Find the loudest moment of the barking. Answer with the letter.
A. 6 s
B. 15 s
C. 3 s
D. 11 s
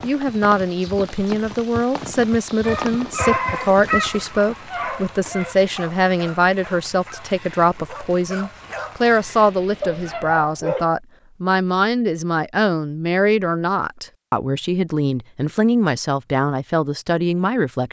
C.